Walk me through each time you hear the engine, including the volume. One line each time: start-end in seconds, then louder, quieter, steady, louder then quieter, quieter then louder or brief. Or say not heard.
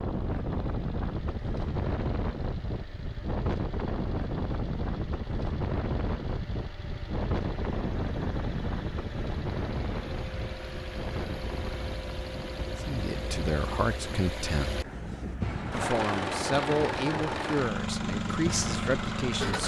0.0-19.6 louder.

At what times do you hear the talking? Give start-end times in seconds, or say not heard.
12.8-14.8, 15.7-19.6.